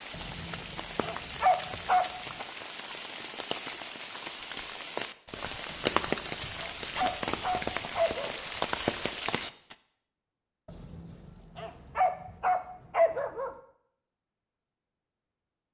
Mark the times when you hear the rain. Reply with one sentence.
The rain can be heard from 0.0 to 9.8 s.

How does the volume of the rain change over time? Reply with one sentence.
The volume of the rain goes up.